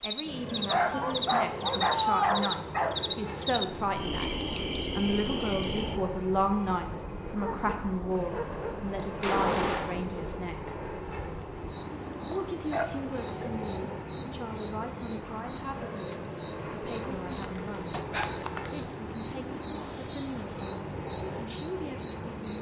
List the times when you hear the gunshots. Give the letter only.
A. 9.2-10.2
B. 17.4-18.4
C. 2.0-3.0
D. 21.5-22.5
A.